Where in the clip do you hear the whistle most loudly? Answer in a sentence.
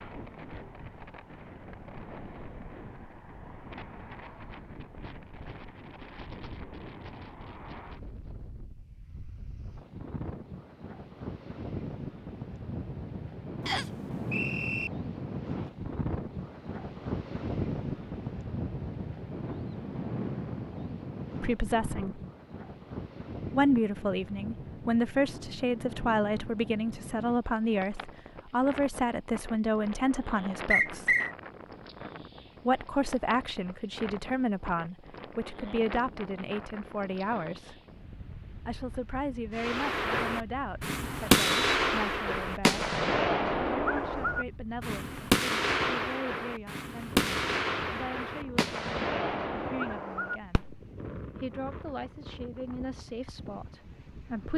The loudest moment of the whistle is at 31 seconds.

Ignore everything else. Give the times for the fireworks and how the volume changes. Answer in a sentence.
The fireworks can be heard from 39.5 to 50.8 s, getting quieter.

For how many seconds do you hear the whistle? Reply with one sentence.
You can hear the whistle for 2 seconds altogether.